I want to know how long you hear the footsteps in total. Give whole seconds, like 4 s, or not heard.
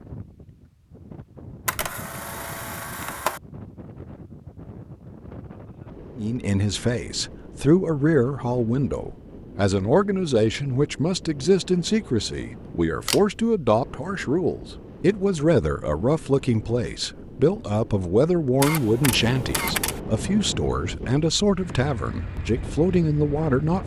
not heard.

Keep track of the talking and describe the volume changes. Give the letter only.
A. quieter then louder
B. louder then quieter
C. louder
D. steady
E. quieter
D.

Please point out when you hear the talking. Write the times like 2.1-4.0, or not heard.
6.2-23.8.